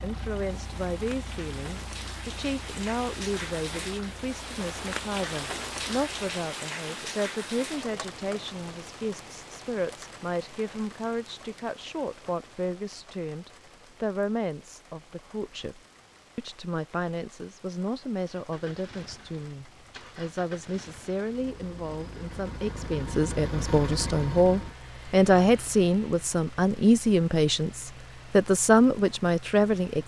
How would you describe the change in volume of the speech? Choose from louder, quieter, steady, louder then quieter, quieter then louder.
louder.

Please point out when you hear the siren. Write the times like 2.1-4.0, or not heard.
not heard.